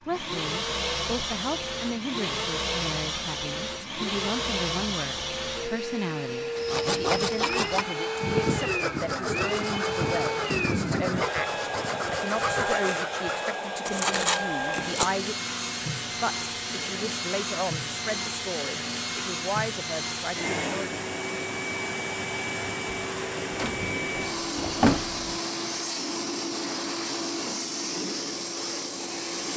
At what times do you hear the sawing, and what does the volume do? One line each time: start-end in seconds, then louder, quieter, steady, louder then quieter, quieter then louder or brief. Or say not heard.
6.5-15.1 steady.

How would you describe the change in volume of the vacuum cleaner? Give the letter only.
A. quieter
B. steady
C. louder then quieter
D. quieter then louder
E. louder
B.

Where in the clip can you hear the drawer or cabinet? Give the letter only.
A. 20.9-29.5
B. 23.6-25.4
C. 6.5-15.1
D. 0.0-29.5
B.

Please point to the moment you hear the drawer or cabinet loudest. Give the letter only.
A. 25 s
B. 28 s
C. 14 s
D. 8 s
A.